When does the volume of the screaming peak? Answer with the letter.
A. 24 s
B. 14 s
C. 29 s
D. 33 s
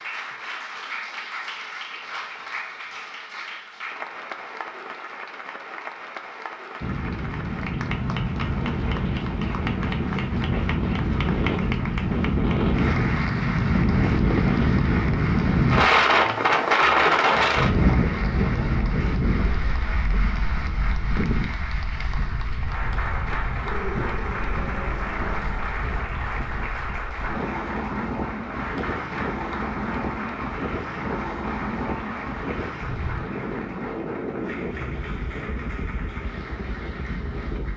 A.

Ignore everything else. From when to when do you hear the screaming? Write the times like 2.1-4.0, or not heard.
23.6-25.4.